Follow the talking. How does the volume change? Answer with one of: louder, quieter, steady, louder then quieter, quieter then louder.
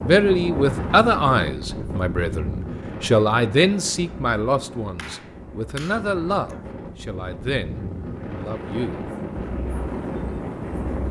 quieter.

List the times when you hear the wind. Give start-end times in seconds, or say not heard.
0.0-11.0.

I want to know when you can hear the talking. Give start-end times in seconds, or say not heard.
0.0-9.1.